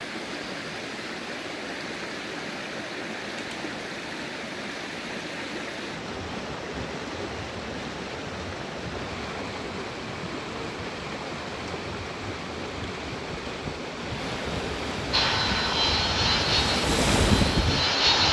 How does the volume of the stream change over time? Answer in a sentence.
The volume of the stream goes up.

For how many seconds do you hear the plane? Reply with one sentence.
You can hear the plane for 3 seconds altogether.